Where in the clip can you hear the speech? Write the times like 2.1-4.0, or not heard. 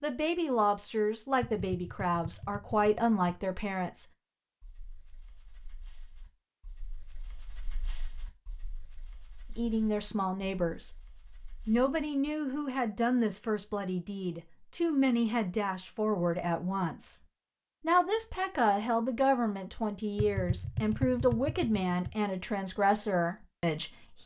0.0-4.0, 9.6-10.9, 11.7-17.2, 17.8-24.2.